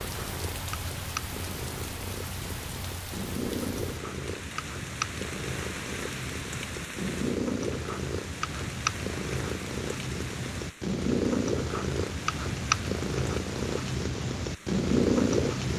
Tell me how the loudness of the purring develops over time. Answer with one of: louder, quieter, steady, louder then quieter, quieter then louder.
louder.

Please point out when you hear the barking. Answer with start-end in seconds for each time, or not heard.
not heard.